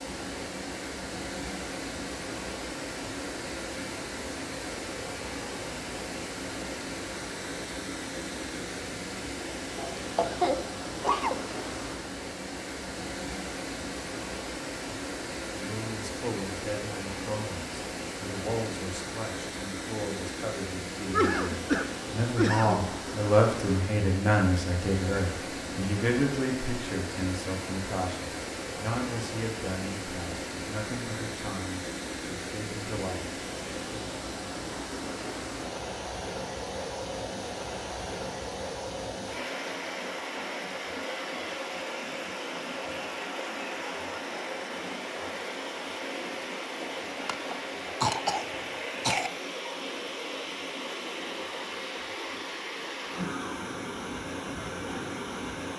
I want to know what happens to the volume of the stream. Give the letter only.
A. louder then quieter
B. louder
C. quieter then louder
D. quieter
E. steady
E.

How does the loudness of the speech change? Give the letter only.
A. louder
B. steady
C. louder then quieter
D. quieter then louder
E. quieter
C.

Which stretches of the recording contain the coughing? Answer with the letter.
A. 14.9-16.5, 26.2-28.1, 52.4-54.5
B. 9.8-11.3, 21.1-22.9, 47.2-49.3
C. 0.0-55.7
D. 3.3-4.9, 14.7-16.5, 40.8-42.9
B.